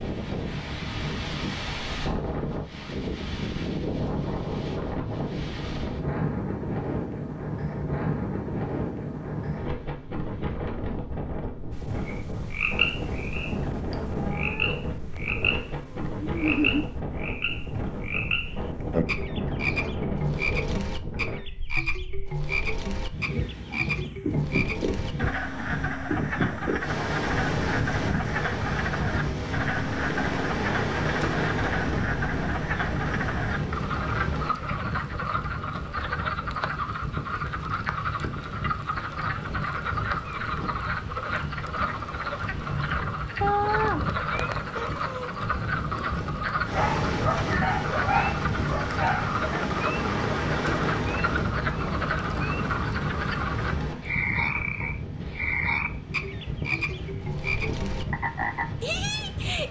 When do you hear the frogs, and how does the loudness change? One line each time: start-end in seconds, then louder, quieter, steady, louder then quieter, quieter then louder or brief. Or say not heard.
11.8-59.6 steady.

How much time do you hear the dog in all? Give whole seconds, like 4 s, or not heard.
3 s.